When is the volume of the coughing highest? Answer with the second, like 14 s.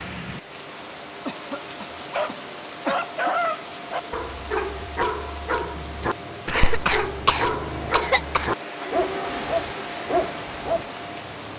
7 s.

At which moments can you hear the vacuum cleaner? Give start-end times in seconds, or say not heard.
0.0-11.5.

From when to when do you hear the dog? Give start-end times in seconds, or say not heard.
2.1-10.9.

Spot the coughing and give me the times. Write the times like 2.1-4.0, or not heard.
1.2-3.1, 6.5-8.5.